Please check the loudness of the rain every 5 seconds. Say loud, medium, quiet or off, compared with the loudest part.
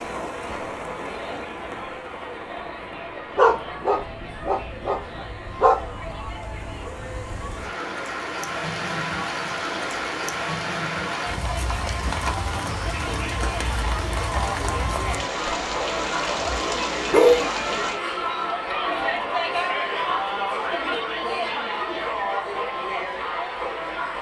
medium, loud, loud, loud, off.